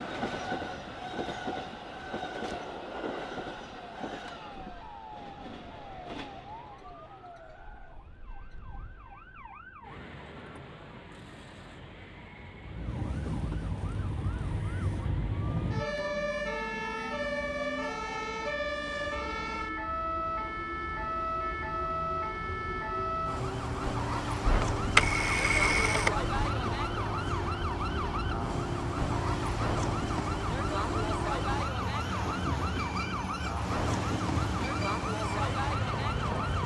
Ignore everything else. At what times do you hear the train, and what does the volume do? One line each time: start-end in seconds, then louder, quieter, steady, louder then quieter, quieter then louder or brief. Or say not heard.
0.0-36.6 quieter then louder.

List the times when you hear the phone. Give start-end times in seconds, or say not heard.
24.4-26.3.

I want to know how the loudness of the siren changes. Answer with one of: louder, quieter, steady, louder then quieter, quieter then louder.
louder.